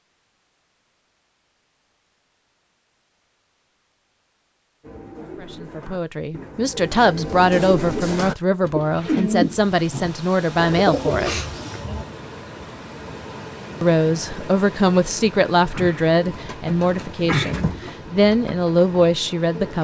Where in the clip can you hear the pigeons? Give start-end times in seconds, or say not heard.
4.8-12.1, 15.6-19.7.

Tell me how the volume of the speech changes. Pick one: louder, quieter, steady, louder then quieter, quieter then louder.
steady.